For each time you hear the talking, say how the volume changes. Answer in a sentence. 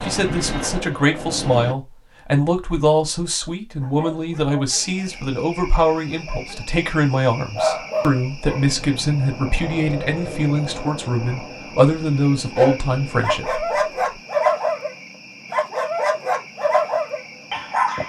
You can hear the talking from 0.0 to 13.7 s, at a steady volume.